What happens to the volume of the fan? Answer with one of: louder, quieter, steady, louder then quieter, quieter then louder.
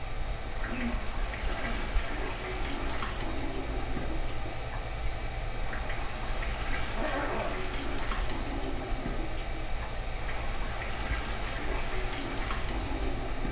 steady.